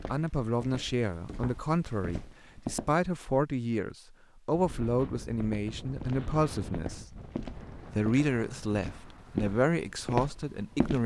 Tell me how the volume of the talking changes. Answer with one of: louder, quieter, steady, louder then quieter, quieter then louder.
steady.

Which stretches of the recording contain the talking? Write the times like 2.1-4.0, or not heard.
0.1-7.2, 8.0-11.0.